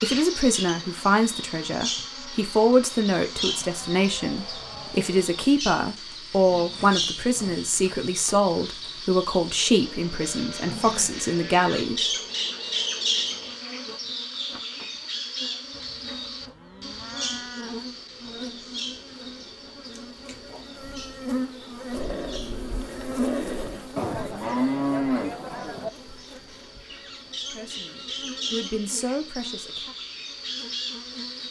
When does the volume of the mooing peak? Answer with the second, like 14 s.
25 s.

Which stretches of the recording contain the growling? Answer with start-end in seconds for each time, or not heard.
6.5-7.6, 10.6-11.3, 21.9-23.9.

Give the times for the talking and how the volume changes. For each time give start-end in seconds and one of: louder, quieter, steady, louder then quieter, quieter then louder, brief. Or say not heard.
0.0-12.1 steady
27.4-29.9 brief.